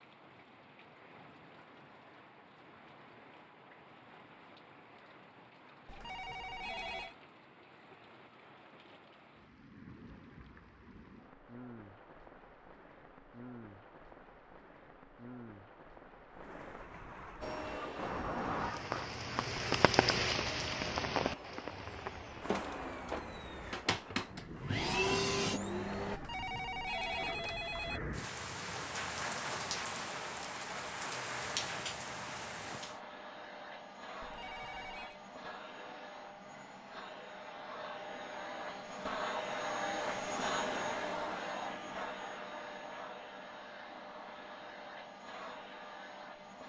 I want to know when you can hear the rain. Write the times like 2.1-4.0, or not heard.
0.0-33.0.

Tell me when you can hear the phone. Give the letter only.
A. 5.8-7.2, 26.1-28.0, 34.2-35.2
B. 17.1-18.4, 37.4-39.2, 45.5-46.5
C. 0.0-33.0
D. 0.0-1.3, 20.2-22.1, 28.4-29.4
A.